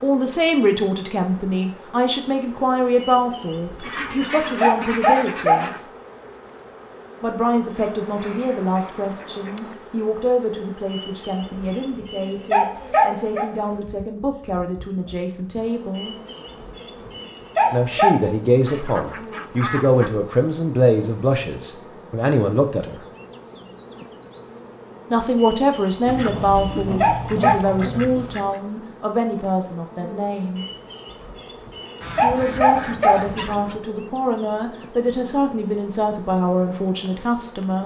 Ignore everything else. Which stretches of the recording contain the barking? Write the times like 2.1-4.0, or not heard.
3.0-5.6, 10.9-13.5, 15.9-18.1, 25.4-27.6, 30.6-33.2.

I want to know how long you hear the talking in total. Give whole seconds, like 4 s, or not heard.
31 s.